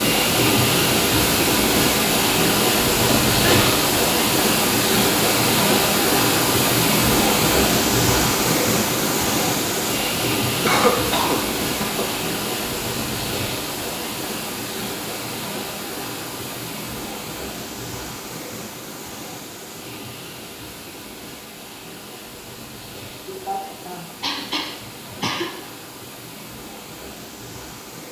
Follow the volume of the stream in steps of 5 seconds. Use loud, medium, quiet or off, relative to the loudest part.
loud, loud, medium, quiet, quiet, quiet.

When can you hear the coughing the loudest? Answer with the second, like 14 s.
11 s.